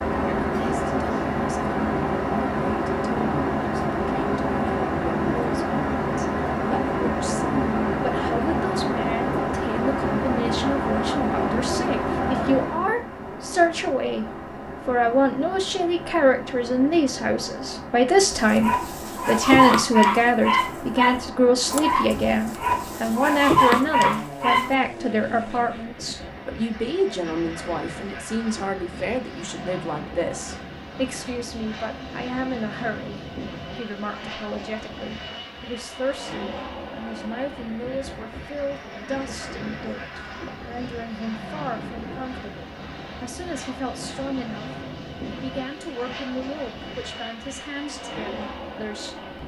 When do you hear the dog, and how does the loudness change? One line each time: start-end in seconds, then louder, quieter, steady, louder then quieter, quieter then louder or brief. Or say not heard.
18.3-24.8 quieter then louder.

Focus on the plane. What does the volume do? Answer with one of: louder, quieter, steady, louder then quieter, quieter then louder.
quieter.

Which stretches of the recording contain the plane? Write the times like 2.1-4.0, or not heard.
0.0-49.4.